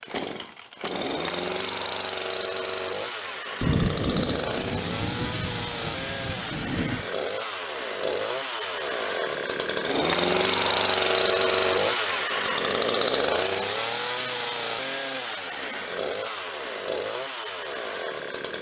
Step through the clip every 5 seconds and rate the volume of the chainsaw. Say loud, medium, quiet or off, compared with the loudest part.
medium, medium, loud, medium.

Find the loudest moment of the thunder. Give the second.
4 s.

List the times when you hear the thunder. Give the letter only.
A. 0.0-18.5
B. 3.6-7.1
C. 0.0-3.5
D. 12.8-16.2
B.